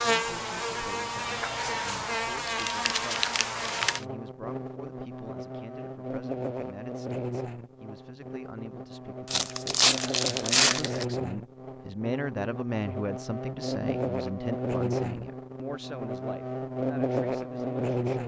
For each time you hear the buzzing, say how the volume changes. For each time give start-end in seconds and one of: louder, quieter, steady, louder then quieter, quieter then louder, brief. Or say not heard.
0.0-18.2 quieter then louder.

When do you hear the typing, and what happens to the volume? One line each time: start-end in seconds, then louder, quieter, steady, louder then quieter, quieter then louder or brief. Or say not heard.
not heard.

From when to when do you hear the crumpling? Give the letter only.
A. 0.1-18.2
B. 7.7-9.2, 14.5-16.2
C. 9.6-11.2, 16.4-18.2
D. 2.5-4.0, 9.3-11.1
D.